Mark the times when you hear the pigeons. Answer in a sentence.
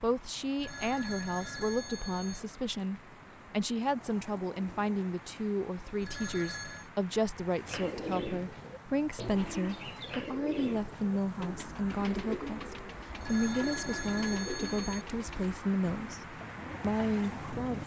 You can hear the pigeons from 7.7 to 17.8 s.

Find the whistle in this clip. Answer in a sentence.
You can't hear the whistle here.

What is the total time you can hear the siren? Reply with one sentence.
The siren can't be heard in this clip.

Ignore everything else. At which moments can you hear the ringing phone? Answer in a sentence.
You can hear the ringing phone from 0.6 to 2.4 s, from 6.0 to 6.9 s and from 13.2 to 15.1 s.